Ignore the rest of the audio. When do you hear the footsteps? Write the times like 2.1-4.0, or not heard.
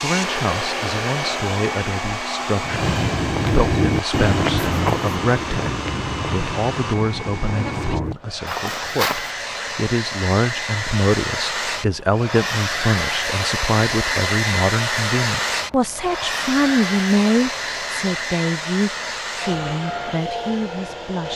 2.6-9.3.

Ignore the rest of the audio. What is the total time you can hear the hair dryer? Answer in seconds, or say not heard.
21 s.